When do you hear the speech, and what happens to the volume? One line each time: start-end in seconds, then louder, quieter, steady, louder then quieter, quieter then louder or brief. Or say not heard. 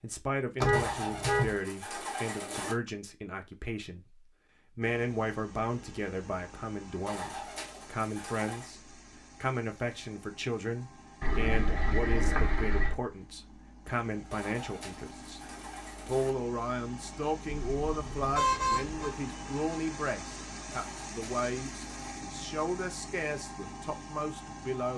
0.0-24.9 steady.